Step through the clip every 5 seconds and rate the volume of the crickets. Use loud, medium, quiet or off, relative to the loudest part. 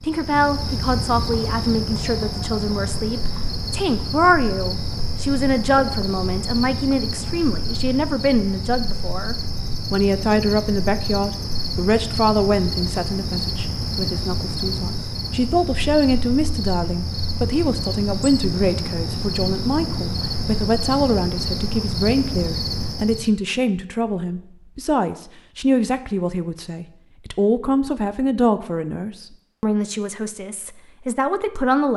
loud, loud, loud, loud, loud, off, off.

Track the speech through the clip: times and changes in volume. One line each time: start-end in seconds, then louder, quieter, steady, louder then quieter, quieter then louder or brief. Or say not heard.
0.0-31.9 steady.